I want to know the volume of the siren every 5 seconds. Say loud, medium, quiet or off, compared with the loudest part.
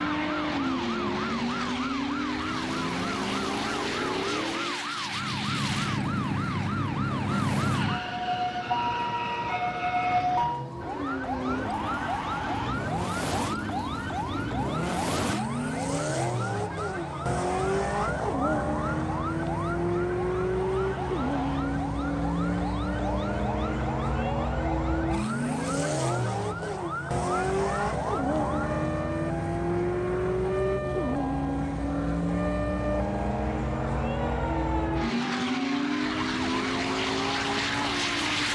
medium, loud, loud, medium, medium, medium, medium, medium.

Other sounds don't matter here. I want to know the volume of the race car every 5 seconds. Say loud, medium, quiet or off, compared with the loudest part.
loud, medium, medium, loud, loud, loud, loud, loud.